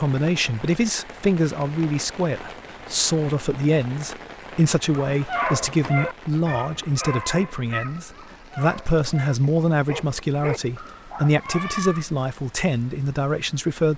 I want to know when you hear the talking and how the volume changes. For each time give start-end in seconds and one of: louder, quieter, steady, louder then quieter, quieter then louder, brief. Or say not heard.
0.0-13.9 steady.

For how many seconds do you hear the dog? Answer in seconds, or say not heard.
7 s.